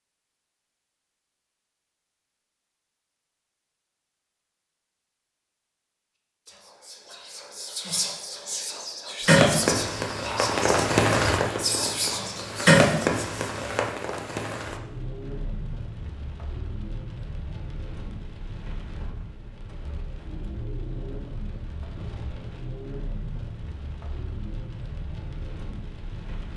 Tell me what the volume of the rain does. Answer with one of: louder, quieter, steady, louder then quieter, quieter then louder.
quieter.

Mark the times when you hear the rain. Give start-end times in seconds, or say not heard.
9.2-26.5.